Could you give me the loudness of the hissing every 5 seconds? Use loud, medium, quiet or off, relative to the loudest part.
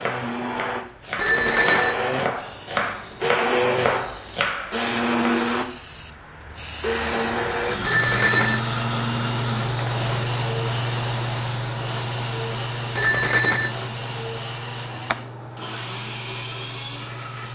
quiet, loud, loud, medium.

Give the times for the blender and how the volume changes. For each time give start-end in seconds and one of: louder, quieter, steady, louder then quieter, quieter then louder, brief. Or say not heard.
0.0-17.5 quieter.